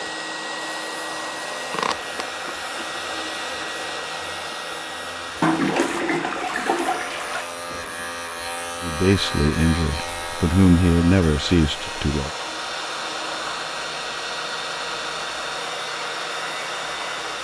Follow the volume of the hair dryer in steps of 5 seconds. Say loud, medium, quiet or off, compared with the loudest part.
loud, medium, loud, loud.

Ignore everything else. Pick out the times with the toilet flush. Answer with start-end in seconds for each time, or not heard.
5.4-7.5.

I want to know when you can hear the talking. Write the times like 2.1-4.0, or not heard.
8.8-12.3.